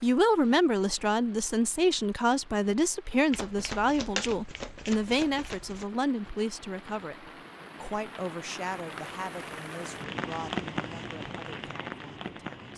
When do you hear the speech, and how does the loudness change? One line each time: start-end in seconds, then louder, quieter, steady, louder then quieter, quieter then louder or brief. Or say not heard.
0.0-12.7 quieter.